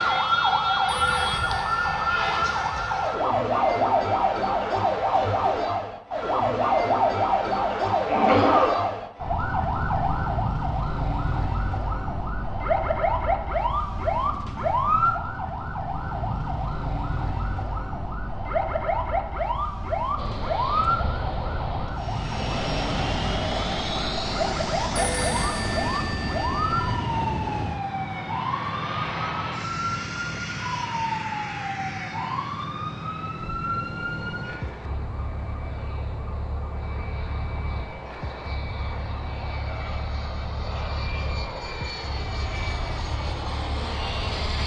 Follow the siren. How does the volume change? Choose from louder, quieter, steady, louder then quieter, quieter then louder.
quieter.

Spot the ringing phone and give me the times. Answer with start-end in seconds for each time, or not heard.
0.8-2.9, 24.9-26.9.